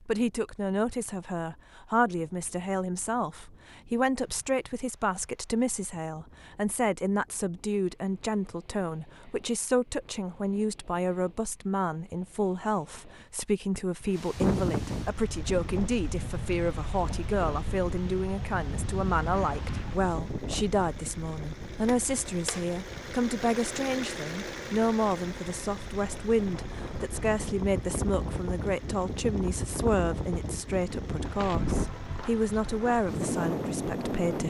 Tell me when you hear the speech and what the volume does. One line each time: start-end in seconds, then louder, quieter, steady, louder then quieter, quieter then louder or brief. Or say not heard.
0.1-34.4 steady.